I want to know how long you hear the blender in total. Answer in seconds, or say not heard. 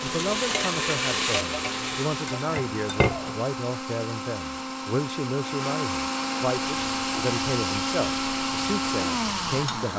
10 s.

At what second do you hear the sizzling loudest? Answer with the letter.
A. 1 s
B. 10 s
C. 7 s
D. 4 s
A.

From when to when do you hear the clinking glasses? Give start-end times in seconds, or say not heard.
2.2-3.4.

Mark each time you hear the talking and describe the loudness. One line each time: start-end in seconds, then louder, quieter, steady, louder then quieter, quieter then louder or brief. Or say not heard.
0.0-9.9 steady.